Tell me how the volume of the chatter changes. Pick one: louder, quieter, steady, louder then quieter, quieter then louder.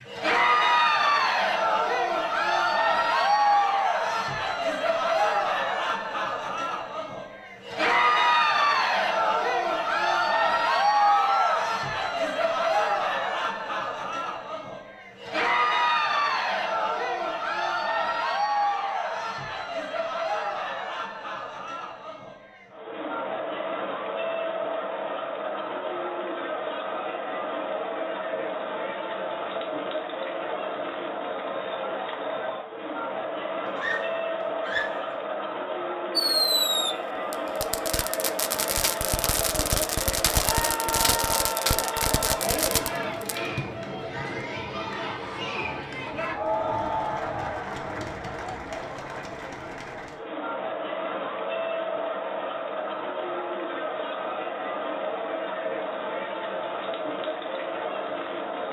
quieter.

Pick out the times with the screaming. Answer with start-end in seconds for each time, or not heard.
11.1-11.7, 33.8-35.1, 40.4-42.4.